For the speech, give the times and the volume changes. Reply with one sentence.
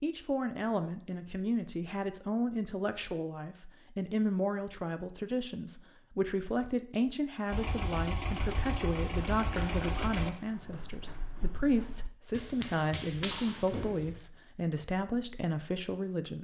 The speech can be heard from 0.0 to 16.3 s, at a steady volume.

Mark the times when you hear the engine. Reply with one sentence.
You can hear the engine from 7.5 to 10.3 s.